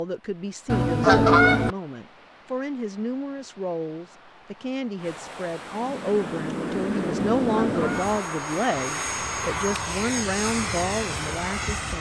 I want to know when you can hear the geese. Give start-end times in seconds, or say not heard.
0.7-1.8, 7.2-8.2.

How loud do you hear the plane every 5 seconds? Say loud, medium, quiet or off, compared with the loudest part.
off, loud, loud.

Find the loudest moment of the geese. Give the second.
1 s.